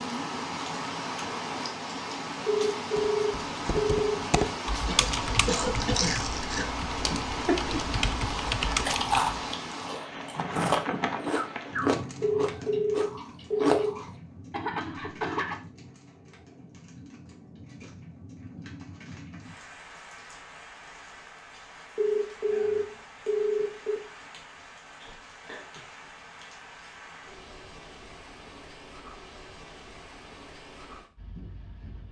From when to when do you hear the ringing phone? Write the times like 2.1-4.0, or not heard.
2.5-4.5, 12.2-13.9, 21.9-24.0.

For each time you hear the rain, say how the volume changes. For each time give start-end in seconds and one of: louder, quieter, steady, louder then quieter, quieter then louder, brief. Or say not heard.
0.0-32.0 quieter.